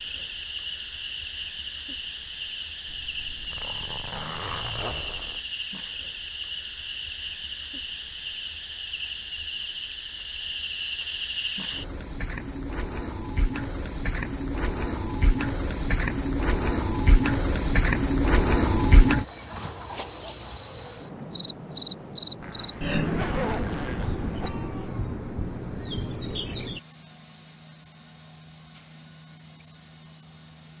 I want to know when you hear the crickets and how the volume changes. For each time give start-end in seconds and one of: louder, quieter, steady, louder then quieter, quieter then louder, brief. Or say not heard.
0.0-30.7 louder then quieter.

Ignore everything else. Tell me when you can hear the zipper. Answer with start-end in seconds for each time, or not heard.
2.9-5.5, 22.4-24.5.